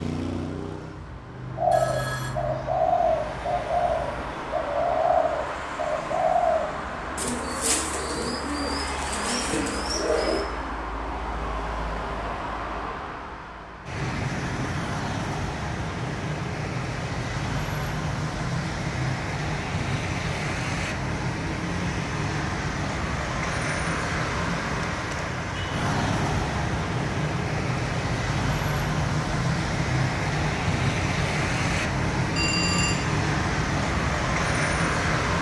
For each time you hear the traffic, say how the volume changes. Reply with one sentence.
The traffic can be heard from 0.0 to 35.3 s, getting louder.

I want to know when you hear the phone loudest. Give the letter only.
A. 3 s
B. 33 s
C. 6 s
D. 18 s
B.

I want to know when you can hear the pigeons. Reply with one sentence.
The pigeons can be heard from 1.6 to 10.4 s.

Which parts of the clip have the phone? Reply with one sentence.
You can hear the phone from 1.7 to 2.4 s and from 32.4 to 33.0 s.